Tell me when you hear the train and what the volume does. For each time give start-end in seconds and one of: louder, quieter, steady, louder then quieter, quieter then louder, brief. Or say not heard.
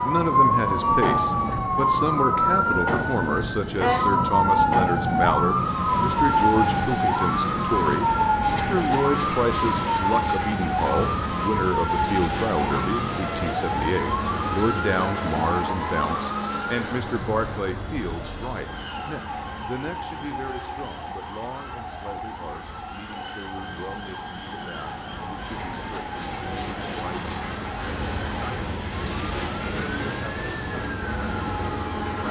0.0-32.2 quieter then louder.